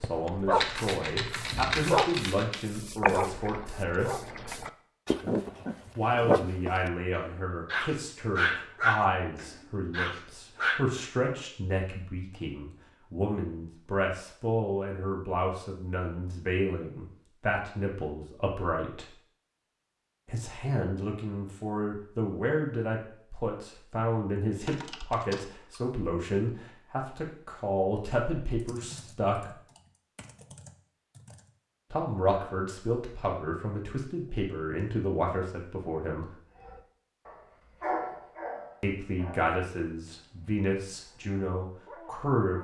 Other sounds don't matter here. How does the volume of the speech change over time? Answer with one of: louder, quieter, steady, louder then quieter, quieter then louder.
steady.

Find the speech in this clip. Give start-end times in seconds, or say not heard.
0.0-4.2, 6.0-19.1, 20.2-29.5, 31.9-36.3, 38.8-42.5.